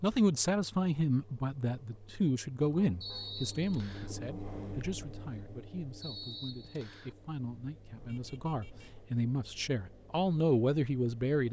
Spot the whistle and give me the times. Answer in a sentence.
The whistle can be heard from 3.0 to 4.2 s and from 6.0 to 7.2 s.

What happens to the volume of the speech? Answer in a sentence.
The volume of the speech goes down, then up.